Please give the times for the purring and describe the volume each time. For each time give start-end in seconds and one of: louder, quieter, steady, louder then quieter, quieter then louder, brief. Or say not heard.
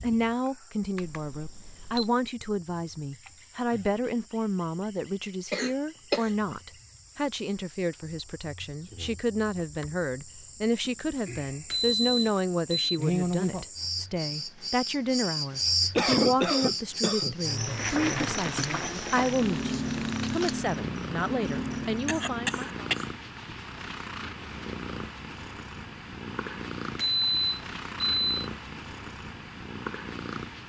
17.4-30.6 steady.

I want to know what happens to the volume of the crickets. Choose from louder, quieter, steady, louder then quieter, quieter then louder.
louder.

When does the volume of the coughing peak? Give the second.
16 s.